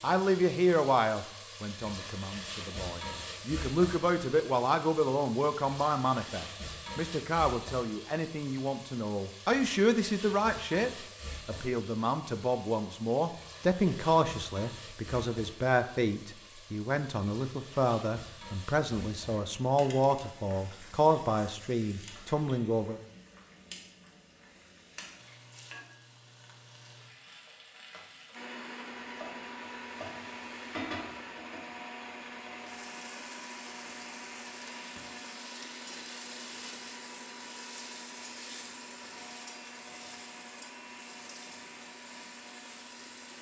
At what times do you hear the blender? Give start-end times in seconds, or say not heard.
28.3-43.3.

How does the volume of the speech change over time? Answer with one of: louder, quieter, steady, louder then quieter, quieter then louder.
steady.